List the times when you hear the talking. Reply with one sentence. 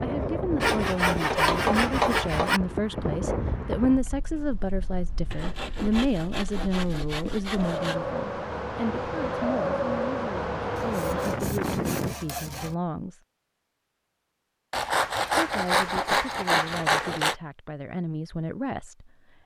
The talking can be heard from 0.0 to 13.2 s and from 15.3 to 19.1 s.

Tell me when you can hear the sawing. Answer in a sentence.
The sawing can be heard from 0.6 to 2.6 s, from 5.3 to 8.0 s, from 10.8 to 12.8 s and from 14.7 to 17.4 s.